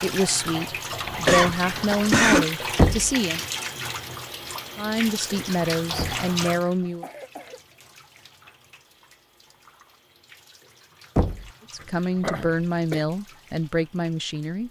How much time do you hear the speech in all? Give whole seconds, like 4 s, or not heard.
9 s.